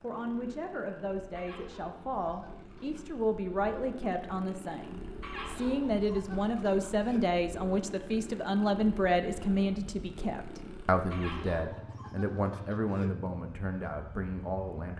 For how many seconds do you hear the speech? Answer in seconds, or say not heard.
15 s.